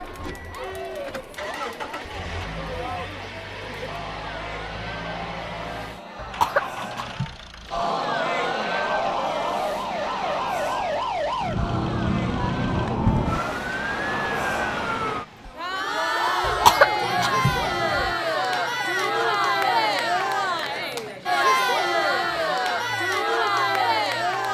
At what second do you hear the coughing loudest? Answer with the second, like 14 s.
17 s.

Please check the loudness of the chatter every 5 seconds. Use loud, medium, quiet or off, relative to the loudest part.
quiet, medium, medium, loud, loud.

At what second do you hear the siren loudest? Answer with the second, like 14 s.
13 s.